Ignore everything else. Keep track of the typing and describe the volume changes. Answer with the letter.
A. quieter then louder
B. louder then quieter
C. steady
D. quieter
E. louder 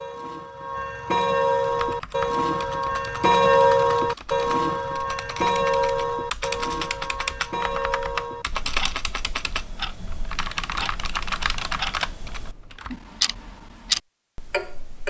E.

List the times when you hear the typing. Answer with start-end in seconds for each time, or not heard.
1.6-12.9.